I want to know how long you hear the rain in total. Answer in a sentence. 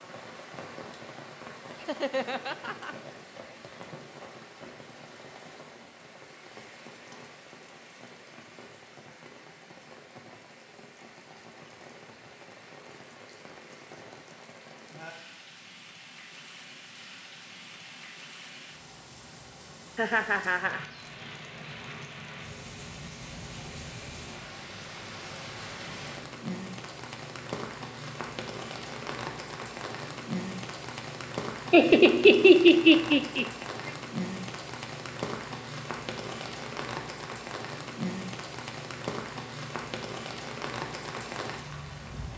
The rain can be heard for 42 seconds in total.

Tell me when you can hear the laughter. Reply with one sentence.
The laughter can be heard from 1.8 to 3.0 s, from 19.9 to 20.9 s and from 31.7 to 33.9 s.